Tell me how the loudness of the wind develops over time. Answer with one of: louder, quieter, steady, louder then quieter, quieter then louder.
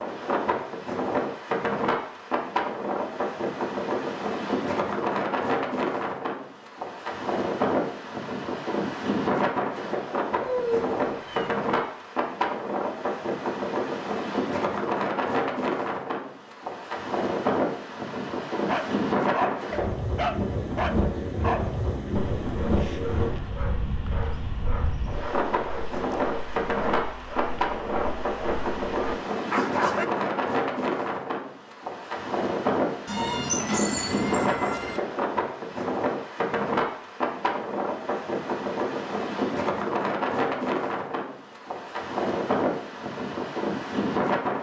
steady.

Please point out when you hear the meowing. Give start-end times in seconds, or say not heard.
10.4-11.5, 33.0-35.0.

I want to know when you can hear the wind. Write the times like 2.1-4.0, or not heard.
0.0-44.5.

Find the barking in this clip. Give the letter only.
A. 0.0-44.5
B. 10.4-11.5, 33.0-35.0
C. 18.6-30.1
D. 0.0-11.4
C.